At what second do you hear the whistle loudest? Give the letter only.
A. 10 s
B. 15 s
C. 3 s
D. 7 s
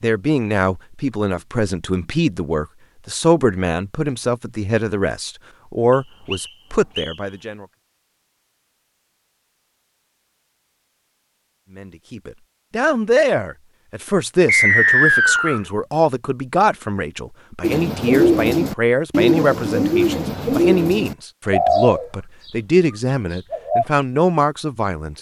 B.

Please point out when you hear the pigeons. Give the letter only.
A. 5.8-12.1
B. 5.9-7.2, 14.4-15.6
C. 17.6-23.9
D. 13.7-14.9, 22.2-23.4
C.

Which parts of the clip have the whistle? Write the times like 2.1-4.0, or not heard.
5.9-7.2, 14.4-15.6.